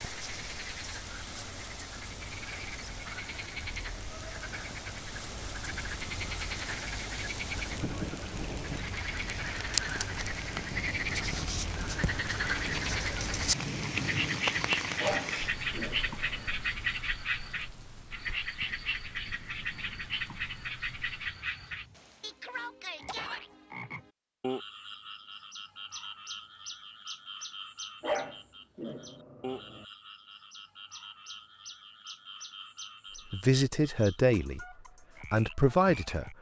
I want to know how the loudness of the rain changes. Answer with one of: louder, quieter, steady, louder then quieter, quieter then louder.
louder then quieter.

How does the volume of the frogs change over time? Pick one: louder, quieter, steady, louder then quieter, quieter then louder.
louder then quieter.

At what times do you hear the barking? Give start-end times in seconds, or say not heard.
15.0-16.6, 28.0-29.9.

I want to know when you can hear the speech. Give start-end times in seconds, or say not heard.
33.3-36.3.